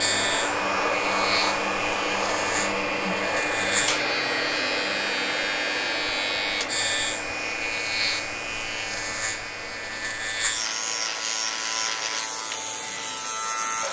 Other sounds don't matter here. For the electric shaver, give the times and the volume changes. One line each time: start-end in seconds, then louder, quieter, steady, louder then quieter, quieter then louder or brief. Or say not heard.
0.0-13.8 steady.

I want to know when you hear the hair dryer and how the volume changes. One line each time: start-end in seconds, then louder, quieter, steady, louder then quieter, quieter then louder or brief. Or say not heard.
0.0-13.8 quieter.